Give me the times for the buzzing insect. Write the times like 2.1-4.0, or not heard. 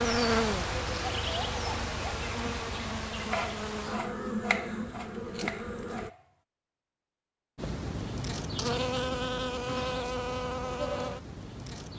0.0-6.1, 7.5-11.9.